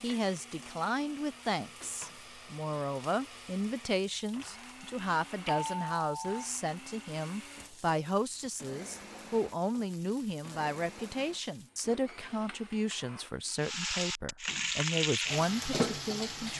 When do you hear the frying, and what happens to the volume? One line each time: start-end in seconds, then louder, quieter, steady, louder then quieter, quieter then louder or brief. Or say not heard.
0.0-16.5 louder.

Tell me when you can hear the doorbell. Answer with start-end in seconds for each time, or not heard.
4.8-6.5.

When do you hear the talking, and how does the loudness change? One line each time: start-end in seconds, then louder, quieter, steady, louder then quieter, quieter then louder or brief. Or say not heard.
0.0-16.5 steady.